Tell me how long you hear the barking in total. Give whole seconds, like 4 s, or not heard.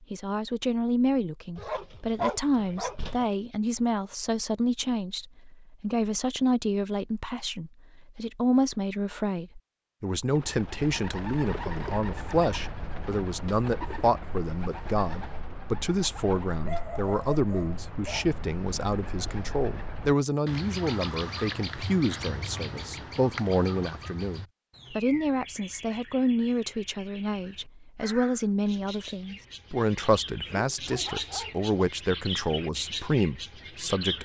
5 s.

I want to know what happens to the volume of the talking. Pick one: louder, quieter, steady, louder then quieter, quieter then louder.
steady.